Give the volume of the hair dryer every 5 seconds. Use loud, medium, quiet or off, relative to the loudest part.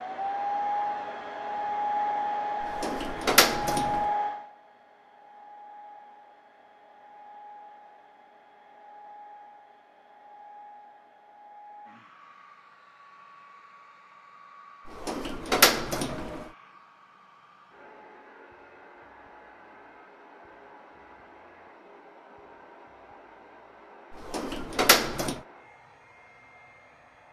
loud, quiet, quiet, quiet, quiet, quiet.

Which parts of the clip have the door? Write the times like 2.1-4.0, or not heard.
2.6-4.0, 14.8-16.4, 24.1-25.4.